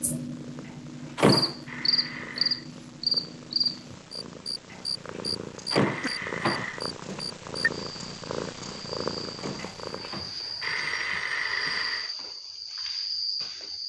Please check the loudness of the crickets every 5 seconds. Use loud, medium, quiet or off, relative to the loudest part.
loud, medium, medium.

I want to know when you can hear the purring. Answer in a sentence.
You can hear the purring from 0.0 to 10.2 s.